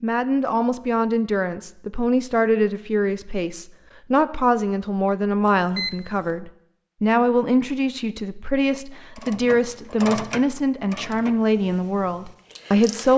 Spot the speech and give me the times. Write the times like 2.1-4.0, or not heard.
0.0-13.1.